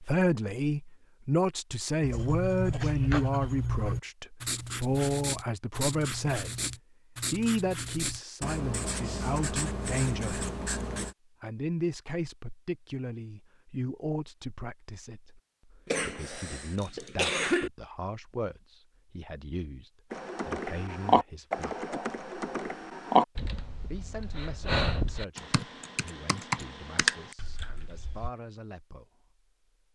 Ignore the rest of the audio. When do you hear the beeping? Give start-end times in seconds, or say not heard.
not heard.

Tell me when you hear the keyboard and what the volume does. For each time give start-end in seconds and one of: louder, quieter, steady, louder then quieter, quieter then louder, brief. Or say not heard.
20.1-28.3 quieter then louder.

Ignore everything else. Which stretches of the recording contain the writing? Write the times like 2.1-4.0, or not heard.
2.0-11.2.